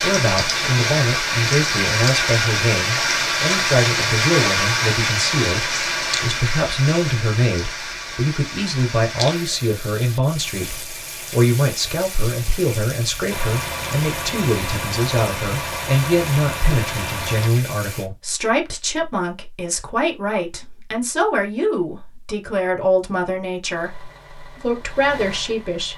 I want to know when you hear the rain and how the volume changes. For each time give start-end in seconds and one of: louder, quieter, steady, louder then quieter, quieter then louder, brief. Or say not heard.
0.0-18.1 quieter.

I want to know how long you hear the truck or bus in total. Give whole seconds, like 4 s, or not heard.
6 s.